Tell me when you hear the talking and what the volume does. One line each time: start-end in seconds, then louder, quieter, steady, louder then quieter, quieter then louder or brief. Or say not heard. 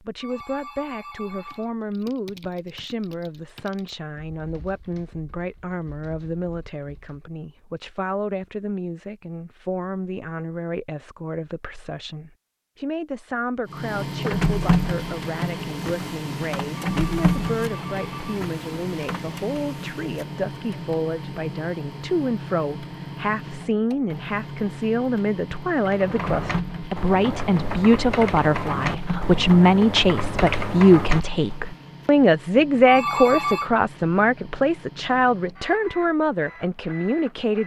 0.0-37.6 louder.